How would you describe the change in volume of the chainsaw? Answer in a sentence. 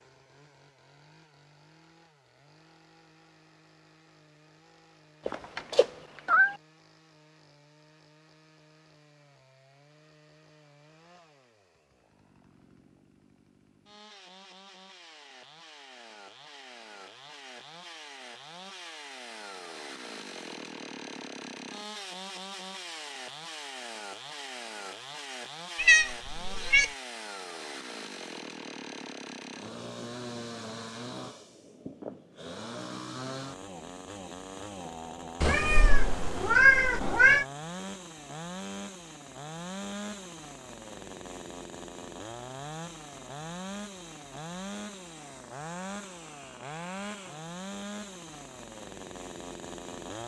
The volume of the chainsaw goes up.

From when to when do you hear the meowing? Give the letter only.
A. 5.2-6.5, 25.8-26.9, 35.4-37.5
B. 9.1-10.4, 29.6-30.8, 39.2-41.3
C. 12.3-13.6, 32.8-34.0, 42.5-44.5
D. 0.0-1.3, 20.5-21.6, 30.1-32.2
A.